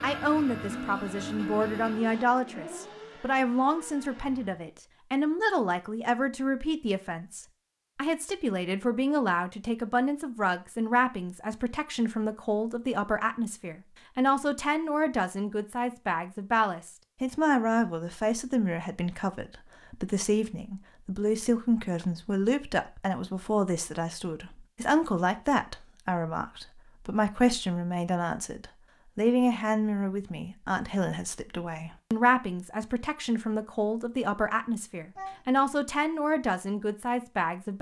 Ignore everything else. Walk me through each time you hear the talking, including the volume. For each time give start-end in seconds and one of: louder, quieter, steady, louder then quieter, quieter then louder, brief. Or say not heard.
0.0-37.7 steady.